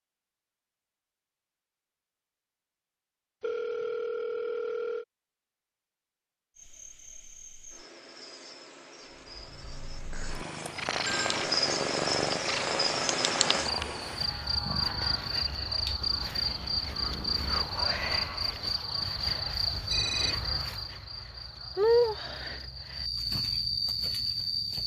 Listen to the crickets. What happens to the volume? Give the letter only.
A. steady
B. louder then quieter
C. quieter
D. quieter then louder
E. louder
E.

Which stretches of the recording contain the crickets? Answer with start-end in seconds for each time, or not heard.
6.5-24.8.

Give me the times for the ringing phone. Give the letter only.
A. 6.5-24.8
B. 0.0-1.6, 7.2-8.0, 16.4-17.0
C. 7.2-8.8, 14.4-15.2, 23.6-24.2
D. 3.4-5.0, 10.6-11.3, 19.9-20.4
D.